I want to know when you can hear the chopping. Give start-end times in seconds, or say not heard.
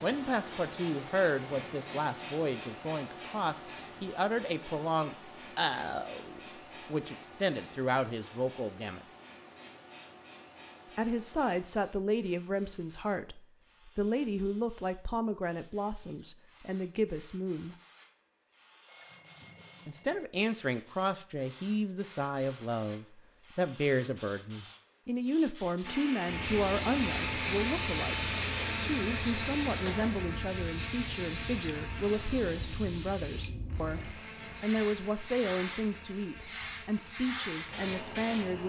not heard.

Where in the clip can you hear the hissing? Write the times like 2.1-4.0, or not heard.
0.0-38.6.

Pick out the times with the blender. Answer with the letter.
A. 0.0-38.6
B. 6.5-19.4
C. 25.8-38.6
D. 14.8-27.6
C.